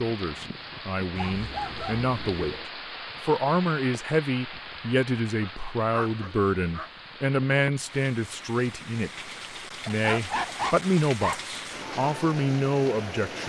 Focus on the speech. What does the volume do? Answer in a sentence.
The loudness of the speech stays about the same.